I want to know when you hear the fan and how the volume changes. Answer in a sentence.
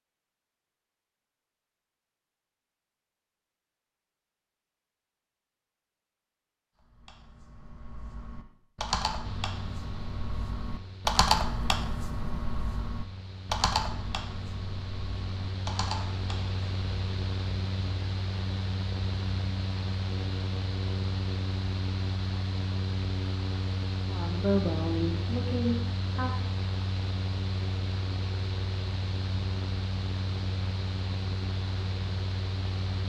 You can hear the fan from 9.2 to 33.0 s, getting louder.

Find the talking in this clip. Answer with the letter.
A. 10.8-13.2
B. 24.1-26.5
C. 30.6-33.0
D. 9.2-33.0
B.